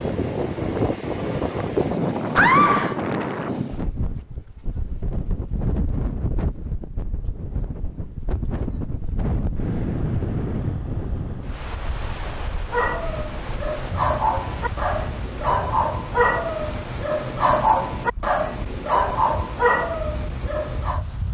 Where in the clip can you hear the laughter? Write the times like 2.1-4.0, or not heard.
2.4-3.0.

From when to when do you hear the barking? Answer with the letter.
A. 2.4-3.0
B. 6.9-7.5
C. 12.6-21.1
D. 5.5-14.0
C.